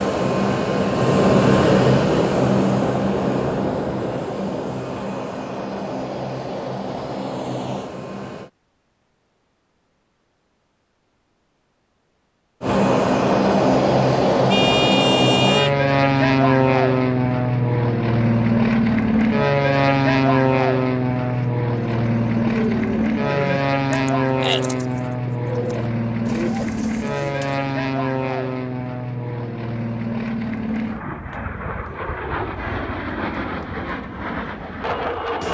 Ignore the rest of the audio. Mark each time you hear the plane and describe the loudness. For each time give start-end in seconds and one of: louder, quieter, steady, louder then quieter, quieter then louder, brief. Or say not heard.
0.0-8.5 quieter
12.6-35.5 quieter.